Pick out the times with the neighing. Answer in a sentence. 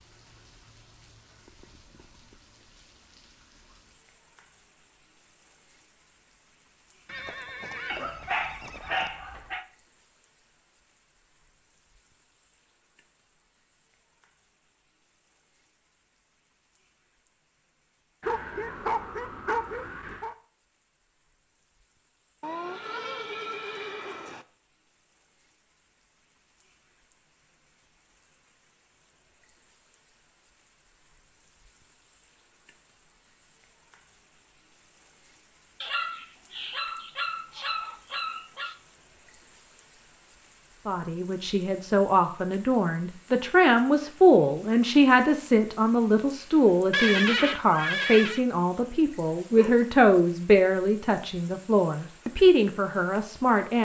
The neighing can be heard from 7.0 to 9.1 s, from 22.4 to 24.4 s and from 46.9 to 48.5 s.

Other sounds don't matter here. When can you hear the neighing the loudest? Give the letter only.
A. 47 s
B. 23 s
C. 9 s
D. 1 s
A.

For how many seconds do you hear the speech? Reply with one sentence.
You can hear the speech for 13 seconds altogether.